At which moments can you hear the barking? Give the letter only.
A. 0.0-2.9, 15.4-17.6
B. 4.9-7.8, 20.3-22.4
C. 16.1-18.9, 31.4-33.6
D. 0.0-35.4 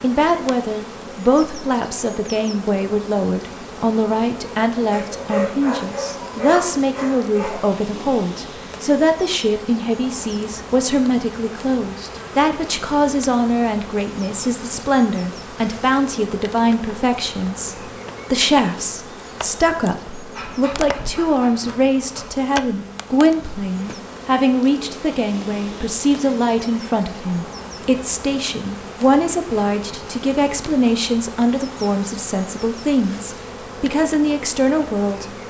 B.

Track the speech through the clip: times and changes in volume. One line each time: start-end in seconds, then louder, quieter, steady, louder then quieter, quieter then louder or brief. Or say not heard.
0.0-35.4 steady.